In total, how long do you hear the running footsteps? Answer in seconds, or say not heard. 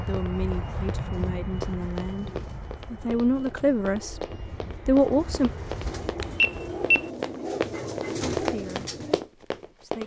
10 s.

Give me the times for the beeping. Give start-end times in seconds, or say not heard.
6.2-7.0.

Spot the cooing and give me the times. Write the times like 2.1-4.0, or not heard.
1.1-9.2.